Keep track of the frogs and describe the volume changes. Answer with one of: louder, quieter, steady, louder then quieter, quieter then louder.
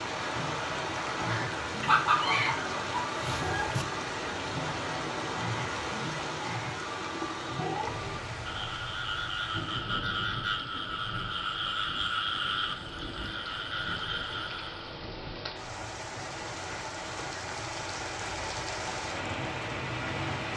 louder.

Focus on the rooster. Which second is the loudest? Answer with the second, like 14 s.
2 s.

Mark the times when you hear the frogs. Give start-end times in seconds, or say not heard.
0.1-15.0.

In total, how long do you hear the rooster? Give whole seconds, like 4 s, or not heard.
2 s.